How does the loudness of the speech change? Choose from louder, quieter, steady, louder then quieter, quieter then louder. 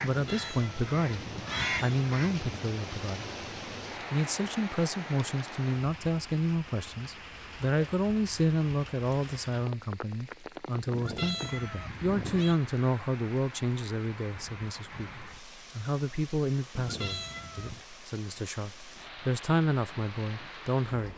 steady.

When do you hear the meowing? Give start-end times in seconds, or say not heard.
0.1-2.8, 10.9-12.6, 16.8-17.8.